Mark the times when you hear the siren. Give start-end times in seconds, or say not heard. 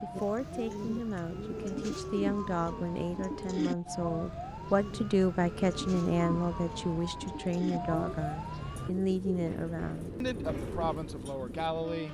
0.0-8.9.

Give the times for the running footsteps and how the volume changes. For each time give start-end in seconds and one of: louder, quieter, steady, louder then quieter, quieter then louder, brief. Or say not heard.
not heard.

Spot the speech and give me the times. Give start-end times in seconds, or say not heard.
0.0-12.0.